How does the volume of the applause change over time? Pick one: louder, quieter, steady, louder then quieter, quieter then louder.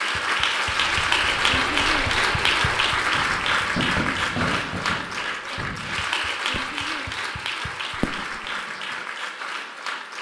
quieter.